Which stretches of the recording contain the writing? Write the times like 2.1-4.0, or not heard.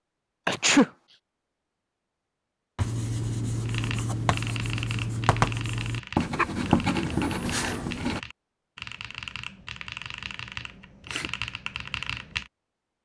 2.8-8.2.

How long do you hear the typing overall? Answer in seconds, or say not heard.
9 s.